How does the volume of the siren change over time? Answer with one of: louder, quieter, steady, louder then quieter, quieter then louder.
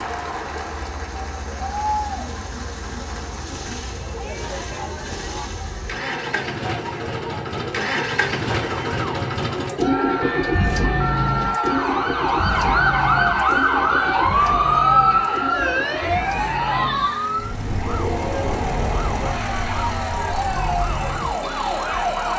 louder then quieter.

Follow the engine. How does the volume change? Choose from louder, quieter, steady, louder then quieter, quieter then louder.
louder then quieter.